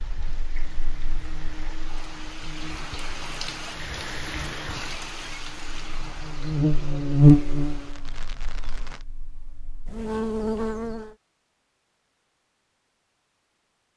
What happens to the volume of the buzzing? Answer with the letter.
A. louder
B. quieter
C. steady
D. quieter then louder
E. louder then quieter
E.